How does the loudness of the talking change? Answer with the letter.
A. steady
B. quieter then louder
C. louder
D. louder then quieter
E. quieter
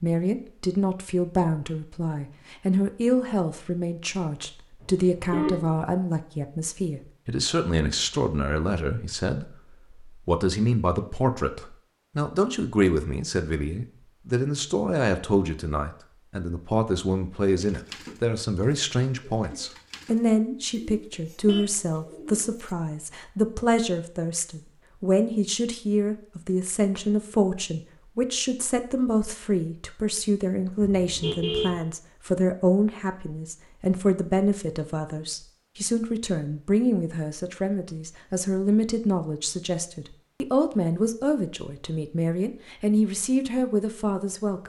A.